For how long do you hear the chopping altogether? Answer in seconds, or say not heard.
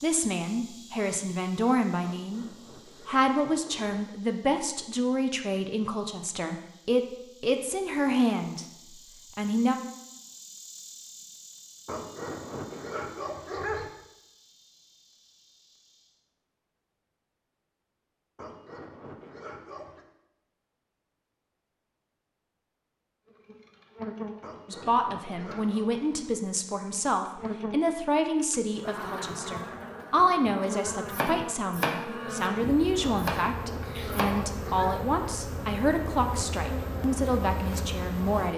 3 s.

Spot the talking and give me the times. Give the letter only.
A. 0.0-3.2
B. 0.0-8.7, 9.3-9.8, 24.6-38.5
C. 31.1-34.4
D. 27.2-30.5
B.